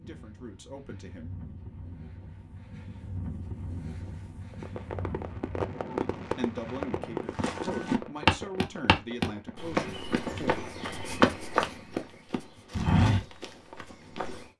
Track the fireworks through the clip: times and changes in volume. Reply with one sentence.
The fireworks can be heard from 4.5 to 11.6 s, getting quieter.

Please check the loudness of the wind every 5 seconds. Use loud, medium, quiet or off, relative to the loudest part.
loud, loud, off.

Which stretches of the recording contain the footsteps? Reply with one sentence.
You can hear the footsteps from 7.3 to 14.4 s.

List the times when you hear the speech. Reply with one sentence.
You can hear the speech from 0.0 to 1.5 s and from 6.2 to 10.5 s.